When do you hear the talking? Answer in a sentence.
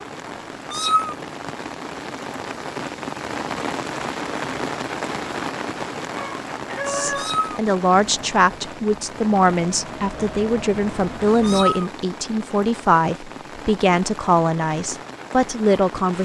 The talking can be heard from 6.8 to 16.1 s.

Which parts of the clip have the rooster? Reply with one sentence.
You can hear the rooster from 6.1 to 7.4 s.